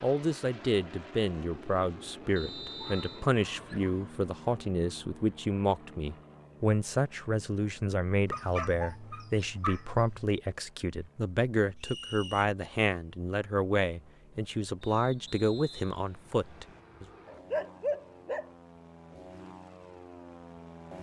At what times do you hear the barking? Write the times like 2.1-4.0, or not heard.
2.8-4.3, 8.2-10.3, 17.2-18.5.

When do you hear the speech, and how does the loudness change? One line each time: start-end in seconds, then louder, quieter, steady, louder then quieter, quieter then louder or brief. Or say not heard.
0.0-17.1 steady.